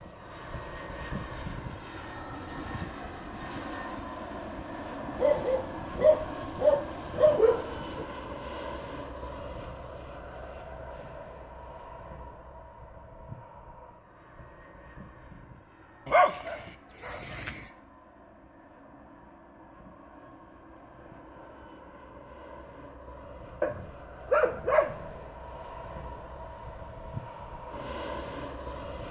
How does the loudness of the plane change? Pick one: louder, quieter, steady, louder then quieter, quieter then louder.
quieter then louder.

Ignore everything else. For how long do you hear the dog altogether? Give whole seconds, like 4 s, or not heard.
6 s.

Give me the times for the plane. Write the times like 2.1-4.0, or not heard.
0.0-29.0.